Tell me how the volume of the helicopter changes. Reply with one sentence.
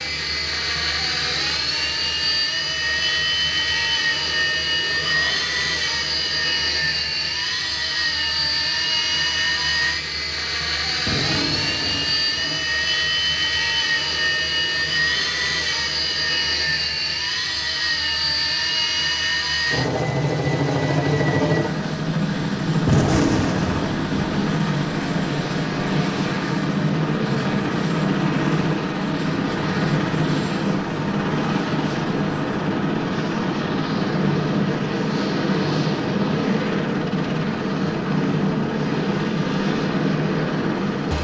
The volume of the helicopter stays about the same.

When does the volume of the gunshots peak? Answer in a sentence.
The volume of the gunshots peaks at 23 seconds.